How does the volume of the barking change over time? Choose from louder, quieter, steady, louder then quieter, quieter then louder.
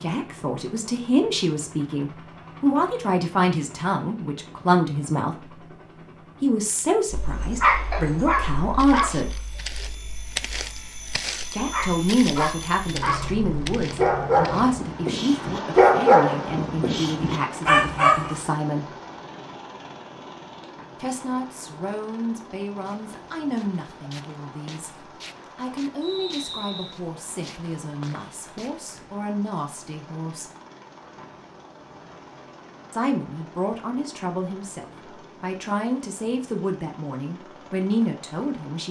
quieter then louder.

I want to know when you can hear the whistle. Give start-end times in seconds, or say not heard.
26.0-27.0.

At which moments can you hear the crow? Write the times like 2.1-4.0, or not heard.
not heard.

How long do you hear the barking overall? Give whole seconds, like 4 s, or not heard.
11 s.